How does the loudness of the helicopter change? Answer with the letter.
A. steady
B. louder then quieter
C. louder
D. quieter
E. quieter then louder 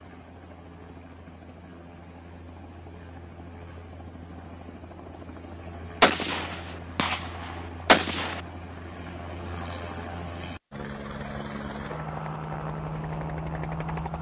C.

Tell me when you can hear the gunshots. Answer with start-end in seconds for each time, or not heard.
6.0-8.4.